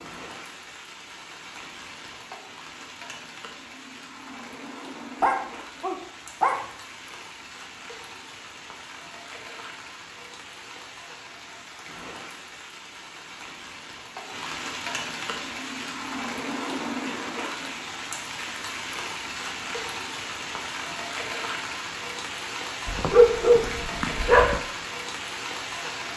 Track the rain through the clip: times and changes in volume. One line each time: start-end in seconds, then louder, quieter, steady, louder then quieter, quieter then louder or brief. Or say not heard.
0.0-26.1 louder.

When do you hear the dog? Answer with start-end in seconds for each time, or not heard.
5.2-6.7, 22.9-24.6.